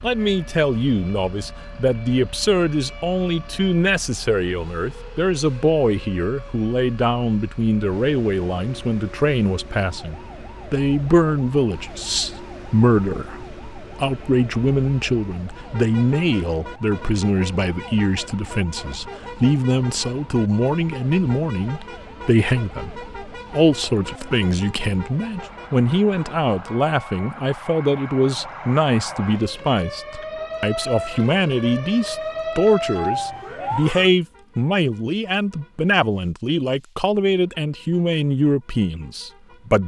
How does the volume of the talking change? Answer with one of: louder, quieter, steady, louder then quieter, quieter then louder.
steady.